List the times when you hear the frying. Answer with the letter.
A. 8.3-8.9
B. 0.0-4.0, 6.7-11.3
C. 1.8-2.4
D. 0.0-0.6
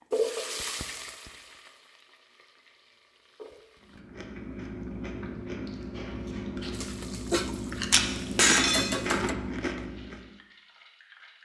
B.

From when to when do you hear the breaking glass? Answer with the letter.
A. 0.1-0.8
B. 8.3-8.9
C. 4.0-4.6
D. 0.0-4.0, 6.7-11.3
B.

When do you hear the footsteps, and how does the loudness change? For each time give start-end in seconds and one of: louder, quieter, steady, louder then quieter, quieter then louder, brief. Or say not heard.
not heard.